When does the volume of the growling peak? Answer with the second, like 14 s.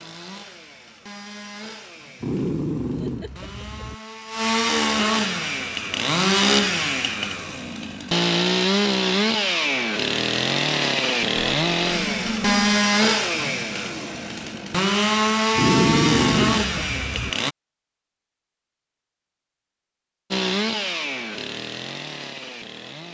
16 s.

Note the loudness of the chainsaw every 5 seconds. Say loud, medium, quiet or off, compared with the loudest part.
medium, loud, loud, loud, medium.